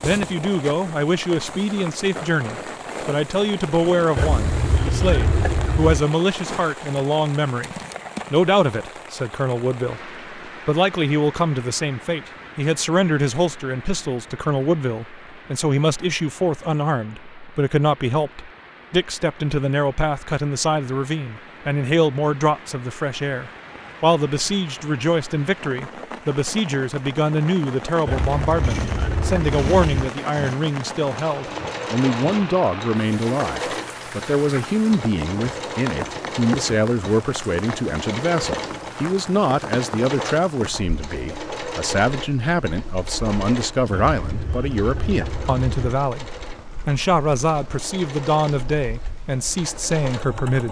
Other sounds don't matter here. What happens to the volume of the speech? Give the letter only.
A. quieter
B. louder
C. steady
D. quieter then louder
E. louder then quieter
C.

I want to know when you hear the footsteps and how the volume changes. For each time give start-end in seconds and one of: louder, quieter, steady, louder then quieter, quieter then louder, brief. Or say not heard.
not heard.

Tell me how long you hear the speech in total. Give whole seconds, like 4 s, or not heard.
50 s.